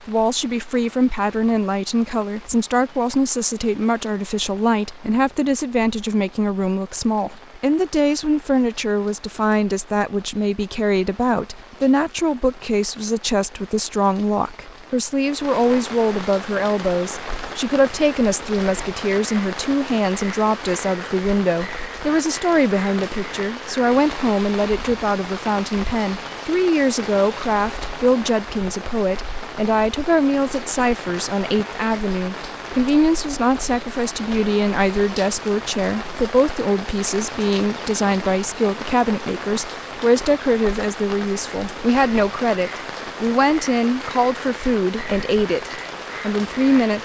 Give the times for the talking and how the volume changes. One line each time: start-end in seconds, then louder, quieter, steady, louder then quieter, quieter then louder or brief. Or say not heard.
0.1-47.0 steady.